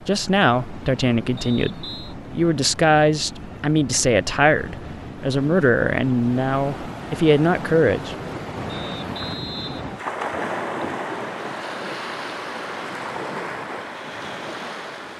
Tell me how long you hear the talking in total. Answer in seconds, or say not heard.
8 s.